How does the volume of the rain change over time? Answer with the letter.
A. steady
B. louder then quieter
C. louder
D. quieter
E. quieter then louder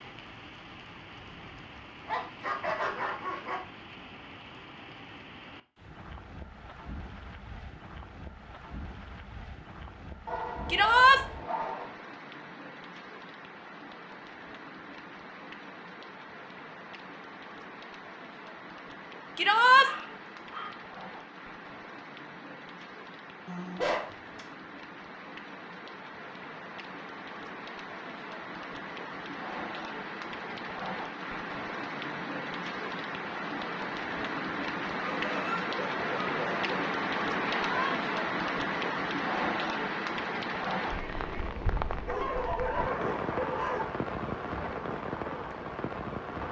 C.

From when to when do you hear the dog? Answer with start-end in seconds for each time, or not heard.
2.0-3.6, 10.2-11.8, 19.8-20.8, 23.4-24.4, 35.0-36.8, 42.0-43.9.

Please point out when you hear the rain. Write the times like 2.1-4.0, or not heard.
0.0-46.4.